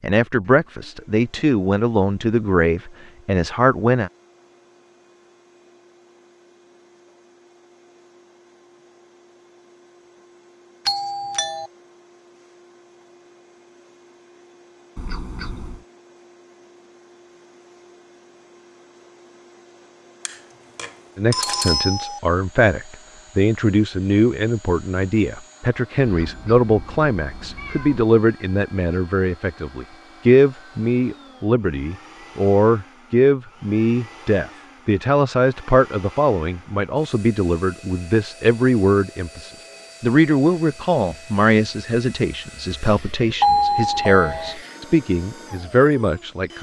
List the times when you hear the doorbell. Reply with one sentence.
The doorbell can be heard from 10.8 to 11.7 s, from 20.2 to 22.2 s and from 43.4 to 44.5 s.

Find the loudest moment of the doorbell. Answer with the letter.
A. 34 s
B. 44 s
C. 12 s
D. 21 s
B.